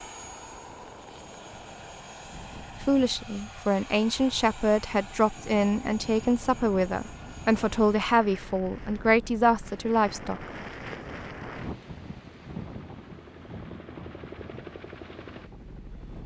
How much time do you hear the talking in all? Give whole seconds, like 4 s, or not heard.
8 s.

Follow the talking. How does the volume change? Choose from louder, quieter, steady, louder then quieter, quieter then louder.
steady.